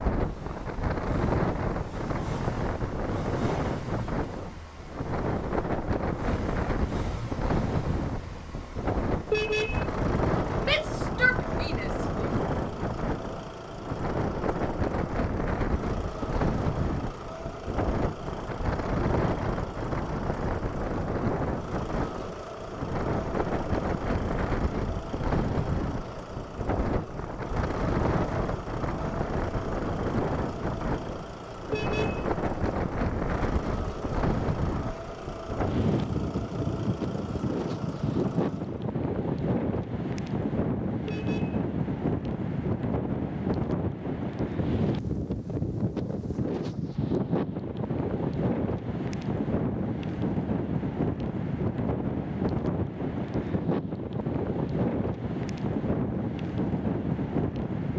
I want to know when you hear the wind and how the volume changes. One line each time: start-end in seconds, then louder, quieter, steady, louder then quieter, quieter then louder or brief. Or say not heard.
0.0-57.9 steady.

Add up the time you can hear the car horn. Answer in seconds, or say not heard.
2 s.